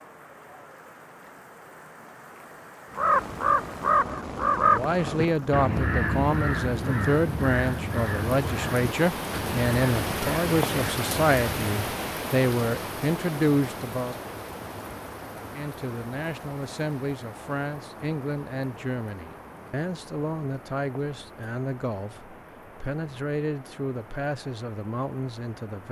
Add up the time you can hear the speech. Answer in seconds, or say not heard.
20 s.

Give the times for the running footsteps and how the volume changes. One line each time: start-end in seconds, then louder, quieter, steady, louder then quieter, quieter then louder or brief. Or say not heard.
not heard.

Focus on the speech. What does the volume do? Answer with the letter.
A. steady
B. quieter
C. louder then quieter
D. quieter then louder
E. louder
B.